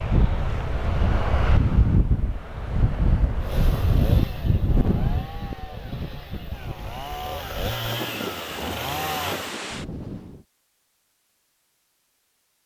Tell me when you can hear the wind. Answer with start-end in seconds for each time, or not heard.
0.0-10.4.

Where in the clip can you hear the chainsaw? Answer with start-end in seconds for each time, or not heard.
3.4-9.6.